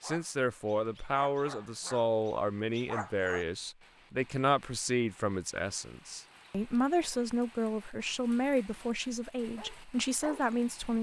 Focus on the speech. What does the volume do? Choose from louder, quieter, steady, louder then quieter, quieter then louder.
steady.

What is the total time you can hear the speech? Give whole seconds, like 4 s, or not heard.
11 s.